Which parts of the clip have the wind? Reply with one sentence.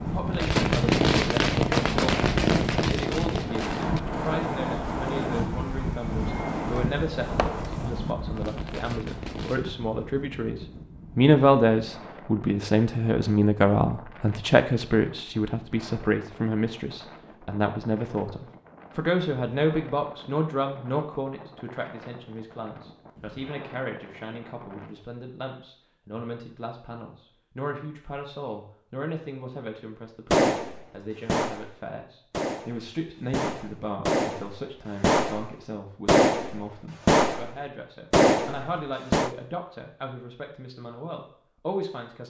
The wind can be heard from 0.0 to 25.1 s.